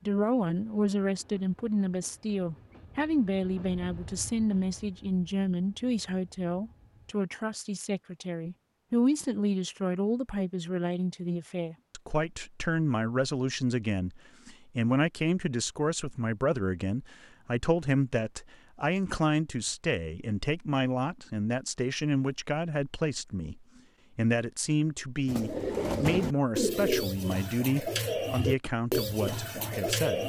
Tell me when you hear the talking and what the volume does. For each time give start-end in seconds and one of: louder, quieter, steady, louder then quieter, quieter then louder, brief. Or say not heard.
0.1-30.2 steady.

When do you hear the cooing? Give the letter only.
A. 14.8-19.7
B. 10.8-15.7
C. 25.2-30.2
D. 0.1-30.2
C.